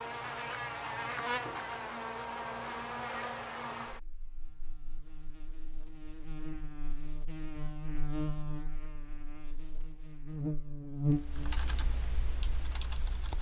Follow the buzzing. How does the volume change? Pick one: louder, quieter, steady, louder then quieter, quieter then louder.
quieter then louder.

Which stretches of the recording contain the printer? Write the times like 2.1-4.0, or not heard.
not heard.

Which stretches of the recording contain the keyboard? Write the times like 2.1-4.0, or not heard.
11.2-13.3.